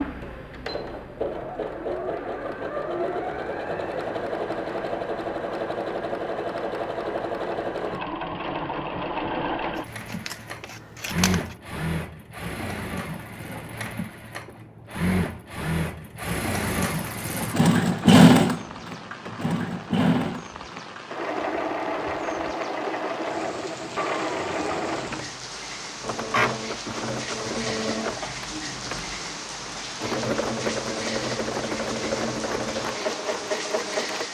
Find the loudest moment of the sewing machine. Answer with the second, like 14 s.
18 s.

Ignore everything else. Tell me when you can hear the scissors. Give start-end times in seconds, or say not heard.
9.8-11.6.